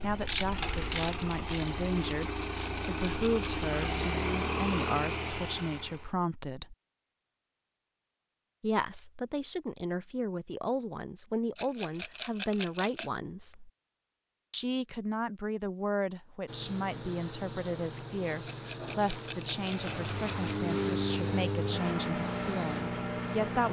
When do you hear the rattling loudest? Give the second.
12 s.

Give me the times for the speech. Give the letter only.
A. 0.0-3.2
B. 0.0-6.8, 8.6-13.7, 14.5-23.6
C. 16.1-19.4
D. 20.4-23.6
B.